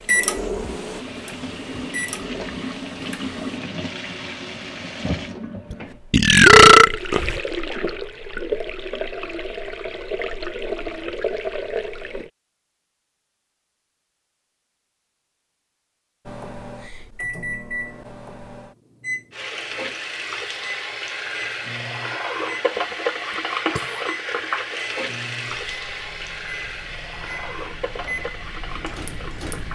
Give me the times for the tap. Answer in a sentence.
The tap can be heard from 0.0 to 12.3 s and from 19.3 to 29.7 s.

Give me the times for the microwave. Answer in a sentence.
The microwave can be heard from 0.0 to 3.6 s and from 16.2 to 29.7 s.